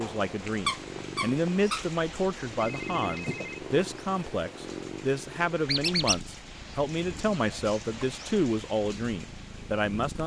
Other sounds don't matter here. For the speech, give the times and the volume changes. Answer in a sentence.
The speech can be heard from 0.0 to 10.2 s, at a steady volume.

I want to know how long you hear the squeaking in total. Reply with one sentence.
The squeaking can be heard for 2 seconds in total.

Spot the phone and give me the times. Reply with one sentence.
The phone can be heard from 2.6 to 3.6 s.